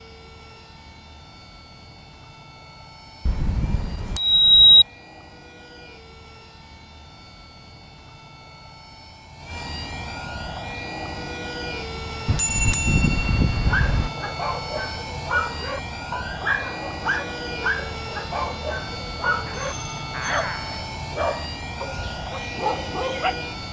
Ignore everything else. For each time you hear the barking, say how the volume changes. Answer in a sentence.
You can hear the barking from 13.6 to 23.4 s, at a steady volume.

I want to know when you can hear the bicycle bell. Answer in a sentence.
You can hear the bicycle bell from 3.2 to 4.8 s, from 12.2 to 14.1 s and from 19.4 to 20.4 s.